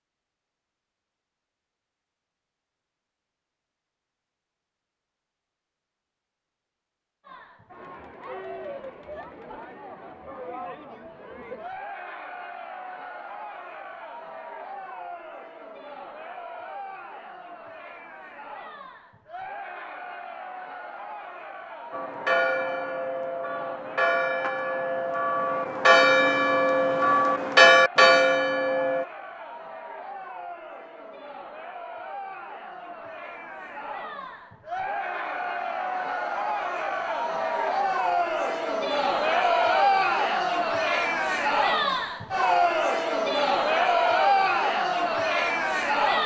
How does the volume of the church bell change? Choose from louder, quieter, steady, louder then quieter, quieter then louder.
louder.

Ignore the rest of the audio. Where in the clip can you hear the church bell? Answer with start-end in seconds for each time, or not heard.
21.9-29.1.